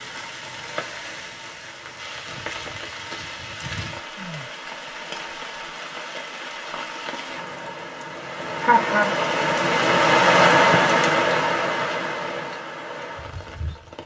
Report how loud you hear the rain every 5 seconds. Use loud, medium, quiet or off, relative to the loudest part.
quiet, medium, loud.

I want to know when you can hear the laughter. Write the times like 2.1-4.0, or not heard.
8.6-9.2.